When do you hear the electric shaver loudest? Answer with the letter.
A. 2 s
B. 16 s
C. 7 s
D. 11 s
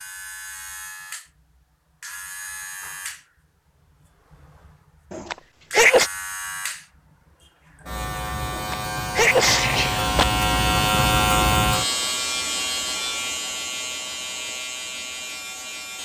D.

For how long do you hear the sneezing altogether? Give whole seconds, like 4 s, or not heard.
3 s.